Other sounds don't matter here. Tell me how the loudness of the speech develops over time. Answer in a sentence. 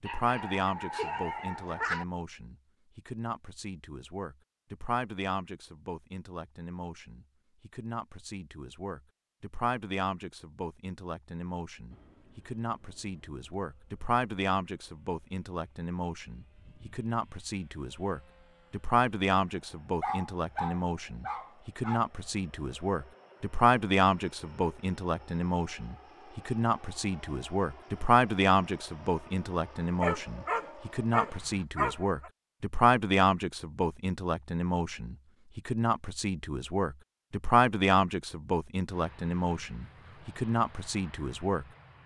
The volume of the speech goes up.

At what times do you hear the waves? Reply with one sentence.
The waves can't be heard in this clip.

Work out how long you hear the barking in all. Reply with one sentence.
The barking can be heard for 6 seconds in total.